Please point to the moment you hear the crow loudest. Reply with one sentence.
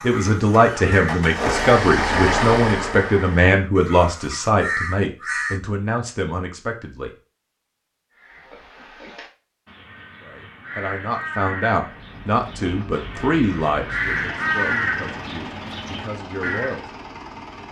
The volume of the crow peaks at 15 seconds.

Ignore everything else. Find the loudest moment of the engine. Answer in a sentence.
The volume of the engine peaks at 2 seconds.